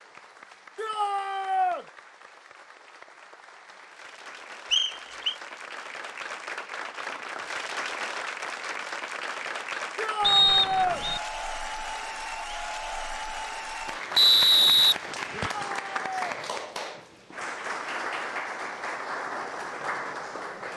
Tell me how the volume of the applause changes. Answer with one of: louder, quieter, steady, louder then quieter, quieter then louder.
louder.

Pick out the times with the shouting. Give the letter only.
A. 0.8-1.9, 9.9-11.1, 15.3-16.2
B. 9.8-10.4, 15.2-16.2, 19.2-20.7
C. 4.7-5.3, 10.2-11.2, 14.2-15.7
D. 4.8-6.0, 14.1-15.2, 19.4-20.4
A.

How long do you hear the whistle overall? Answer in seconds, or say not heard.
3 s.